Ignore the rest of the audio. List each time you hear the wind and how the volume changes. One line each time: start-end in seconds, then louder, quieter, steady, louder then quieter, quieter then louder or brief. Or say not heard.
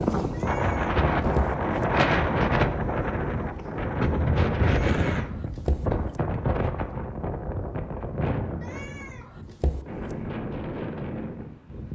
0.0-11.9 quieter.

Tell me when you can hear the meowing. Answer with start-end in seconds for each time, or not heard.
0.3-1.6, 4.8-5.8, 8.6-9.8.